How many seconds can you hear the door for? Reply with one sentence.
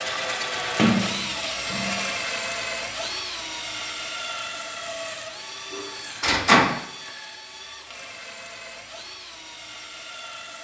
The door can be heard for 2 seconds in total.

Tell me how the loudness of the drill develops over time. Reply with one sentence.
The loudness of the drill goes down.